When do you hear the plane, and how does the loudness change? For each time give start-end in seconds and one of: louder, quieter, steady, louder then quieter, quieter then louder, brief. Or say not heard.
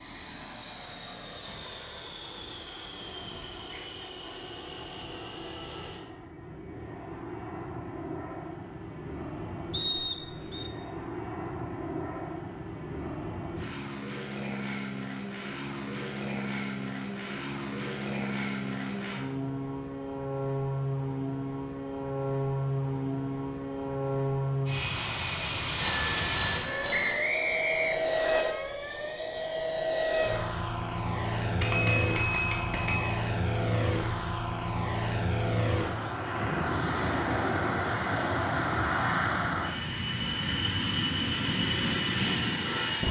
0.0-43.0 louder.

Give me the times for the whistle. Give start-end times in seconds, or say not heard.
9.7-10.7, 26.9-28.4.